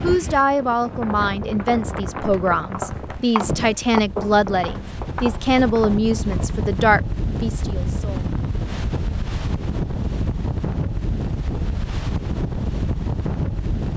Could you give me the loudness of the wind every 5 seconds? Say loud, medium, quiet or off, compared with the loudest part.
medium, loud, loud.